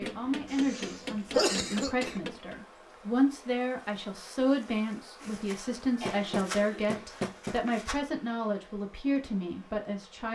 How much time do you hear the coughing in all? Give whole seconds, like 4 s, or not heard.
3 s.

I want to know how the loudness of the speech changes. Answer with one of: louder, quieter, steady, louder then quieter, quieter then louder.
steady.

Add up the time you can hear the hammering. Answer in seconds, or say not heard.
4 s.